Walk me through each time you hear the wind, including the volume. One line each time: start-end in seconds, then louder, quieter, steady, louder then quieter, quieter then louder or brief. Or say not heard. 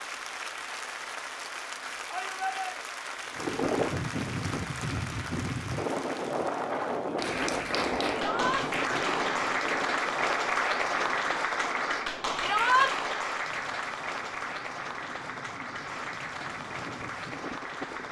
3.3-18.0 quieter.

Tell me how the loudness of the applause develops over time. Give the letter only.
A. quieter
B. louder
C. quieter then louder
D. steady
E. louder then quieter
E.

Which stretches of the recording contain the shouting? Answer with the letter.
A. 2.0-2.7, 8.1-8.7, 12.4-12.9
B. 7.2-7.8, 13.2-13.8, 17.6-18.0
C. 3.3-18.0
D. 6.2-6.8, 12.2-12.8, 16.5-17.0
A.